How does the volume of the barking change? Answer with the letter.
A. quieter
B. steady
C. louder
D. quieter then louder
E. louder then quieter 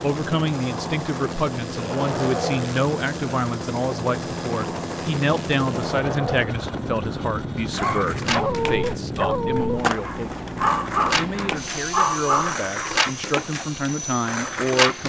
D.